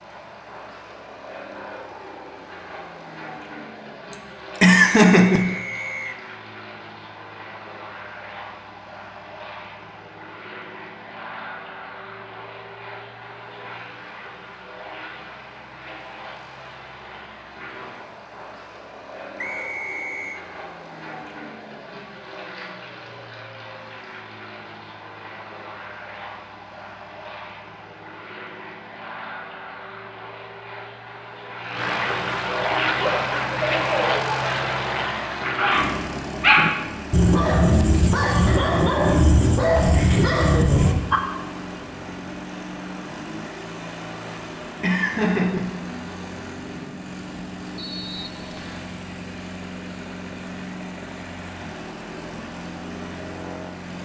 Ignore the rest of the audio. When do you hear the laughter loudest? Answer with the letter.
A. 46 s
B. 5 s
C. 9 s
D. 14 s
B.